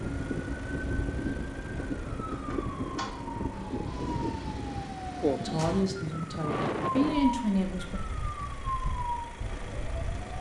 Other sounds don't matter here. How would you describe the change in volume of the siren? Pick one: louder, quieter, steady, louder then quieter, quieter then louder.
steady.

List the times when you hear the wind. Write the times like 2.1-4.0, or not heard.
0.0-10.2.